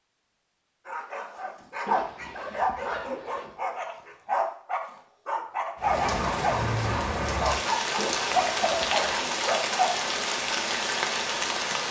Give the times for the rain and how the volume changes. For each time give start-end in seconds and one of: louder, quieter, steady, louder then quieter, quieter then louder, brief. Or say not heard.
5.8-11.8 steady.